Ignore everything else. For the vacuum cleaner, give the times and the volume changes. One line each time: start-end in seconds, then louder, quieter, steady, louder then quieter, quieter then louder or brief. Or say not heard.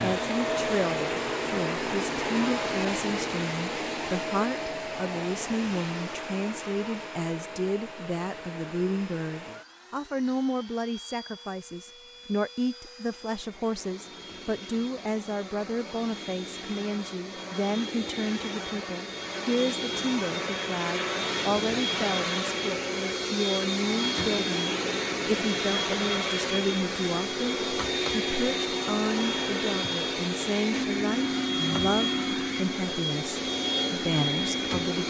0.0-35.0 quieter then louder.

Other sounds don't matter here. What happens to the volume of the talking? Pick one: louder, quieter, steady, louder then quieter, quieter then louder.
steady.